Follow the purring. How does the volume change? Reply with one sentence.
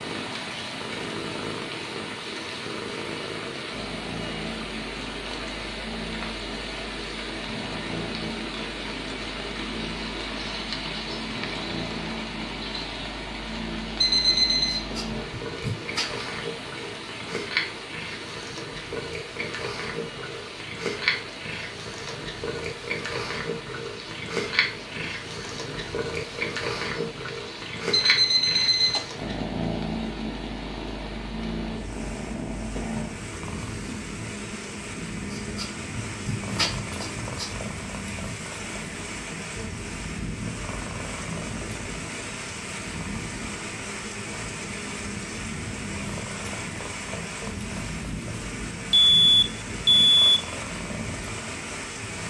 The volume of the purring goes up, then down.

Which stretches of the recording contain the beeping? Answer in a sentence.
You can hear the beeping from 14.0 to 14.8 s, from 27.9 to 29.1 s and from 48.9 to 50.4 s.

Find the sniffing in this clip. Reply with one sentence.
You can hear the sniffing from 14.8 to 16.1 s and from 35.2 to 37.6 s.